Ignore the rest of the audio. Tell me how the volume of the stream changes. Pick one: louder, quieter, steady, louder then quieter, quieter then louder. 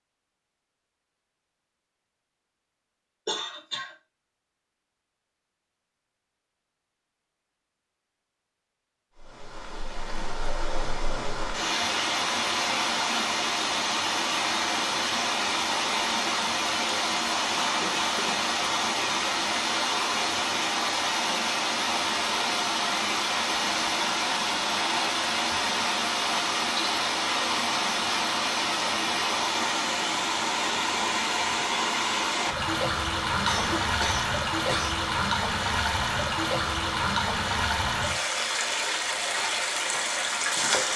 steady.